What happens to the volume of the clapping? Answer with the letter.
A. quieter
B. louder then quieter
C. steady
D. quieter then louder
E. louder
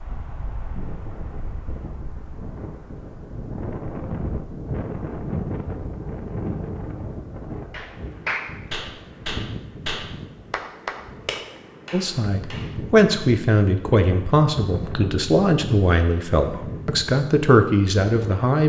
A.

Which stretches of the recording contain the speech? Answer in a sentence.
The speech can be heard from 11.9 to 18.6 s.